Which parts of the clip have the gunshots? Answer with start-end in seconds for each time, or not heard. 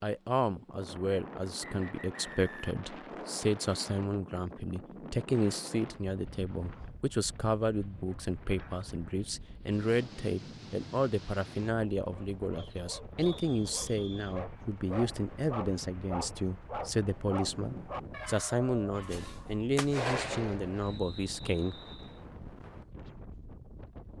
19.1-21.0.